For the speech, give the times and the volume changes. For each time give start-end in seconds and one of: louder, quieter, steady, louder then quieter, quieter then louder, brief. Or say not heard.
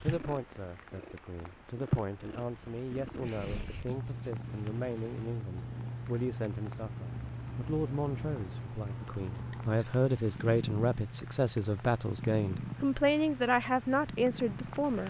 0.0-15.0 louder.